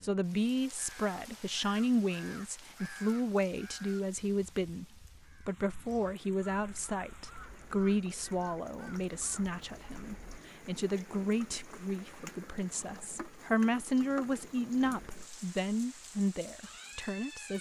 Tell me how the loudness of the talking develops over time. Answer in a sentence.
The volume of the talking stays about the same.